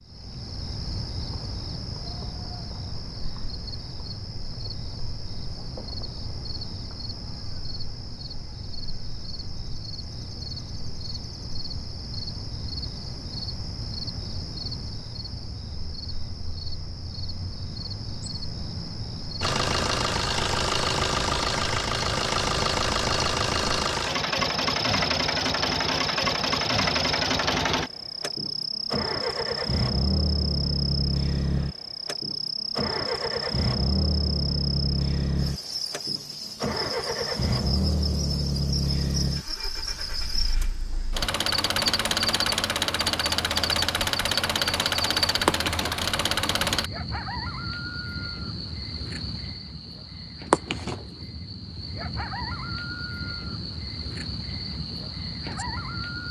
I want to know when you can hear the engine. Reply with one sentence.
The engine can be heard from 19.4 to 46.9 s.